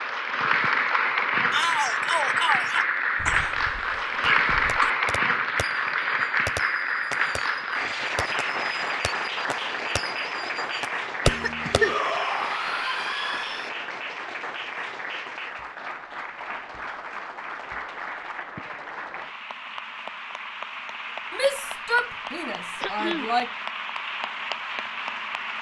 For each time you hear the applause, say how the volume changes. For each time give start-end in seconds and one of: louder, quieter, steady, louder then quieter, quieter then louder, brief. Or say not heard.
0.0-25.5 quieter.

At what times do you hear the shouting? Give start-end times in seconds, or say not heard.
1.5-2.9, 11.7-13.7, 21.3-23.5.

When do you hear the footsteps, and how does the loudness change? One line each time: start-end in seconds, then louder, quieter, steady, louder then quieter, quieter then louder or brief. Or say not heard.
not heard.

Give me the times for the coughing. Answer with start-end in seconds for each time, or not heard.
3.2-4.9, 11.2-11.9, 22.8-23.4.